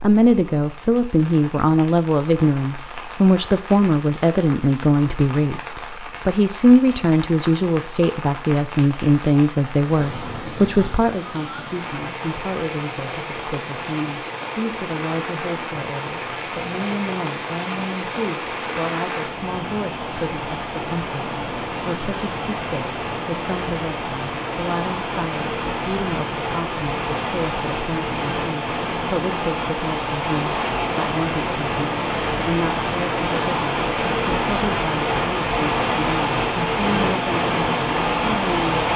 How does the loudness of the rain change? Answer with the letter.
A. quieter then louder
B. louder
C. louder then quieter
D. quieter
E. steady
B.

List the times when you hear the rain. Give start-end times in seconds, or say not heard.
0.0-38.9.